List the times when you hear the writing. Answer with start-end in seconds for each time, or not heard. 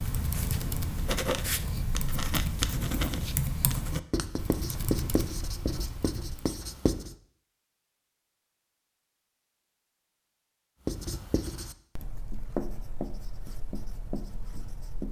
0.0-7.2, 10.8-15.0.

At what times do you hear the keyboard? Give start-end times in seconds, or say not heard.
0.0-6.2.